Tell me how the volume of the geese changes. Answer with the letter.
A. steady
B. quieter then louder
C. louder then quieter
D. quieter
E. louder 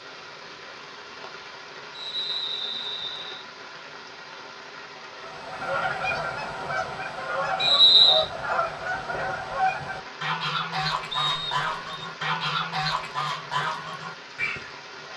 A.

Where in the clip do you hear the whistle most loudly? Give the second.
8 s.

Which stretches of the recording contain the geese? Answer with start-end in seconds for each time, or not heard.
5.2-14.7.